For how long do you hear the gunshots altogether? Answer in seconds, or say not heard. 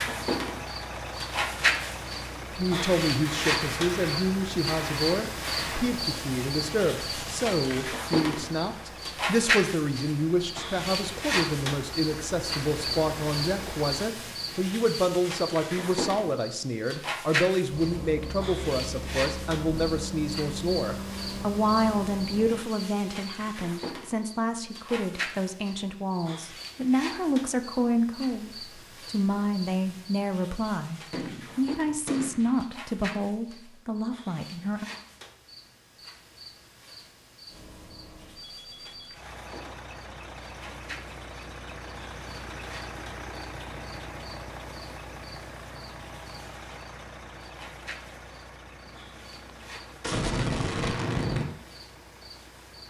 6 s.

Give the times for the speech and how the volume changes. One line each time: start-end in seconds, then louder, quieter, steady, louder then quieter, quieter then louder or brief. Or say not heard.
2.5-34.9 steady.